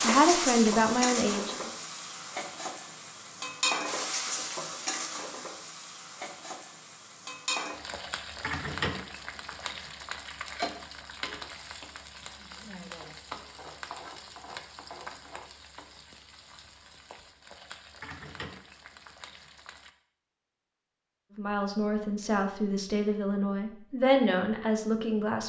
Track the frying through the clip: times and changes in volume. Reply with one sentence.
You can hear the frying from 0.0 to 19.9 s, getting quieter.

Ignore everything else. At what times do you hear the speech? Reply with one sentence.
You can hear the speech from 0.0 to 1.7 s and from 21.4 to 25.4 s.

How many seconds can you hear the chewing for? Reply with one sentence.
The chewing can't be heard in this clip.